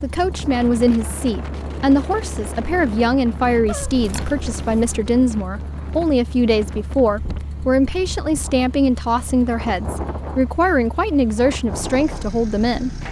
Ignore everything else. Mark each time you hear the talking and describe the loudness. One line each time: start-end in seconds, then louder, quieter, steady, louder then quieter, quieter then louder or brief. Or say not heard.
0.0-12.9 steady.